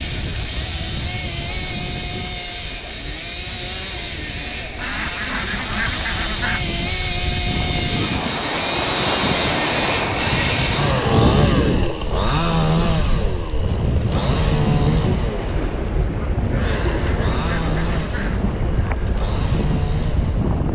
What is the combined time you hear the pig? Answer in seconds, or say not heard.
not heard.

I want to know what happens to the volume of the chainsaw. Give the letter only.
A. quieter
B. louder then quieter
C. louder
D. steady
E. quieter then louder
B.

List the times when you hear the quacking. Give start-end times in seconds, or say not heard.
4.8-6.7, 16.5-18.4.